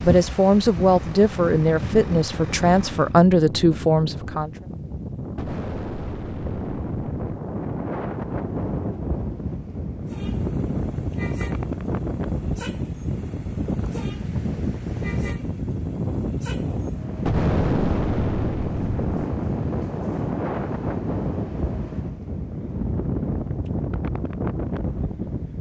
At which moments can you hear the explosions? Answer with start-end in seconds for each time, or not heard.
5.3-7.3, 17.2-19.2.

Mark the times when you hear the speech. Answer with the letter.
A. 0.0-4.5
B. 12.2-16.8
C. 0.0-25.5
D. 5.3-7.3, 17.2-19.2
A.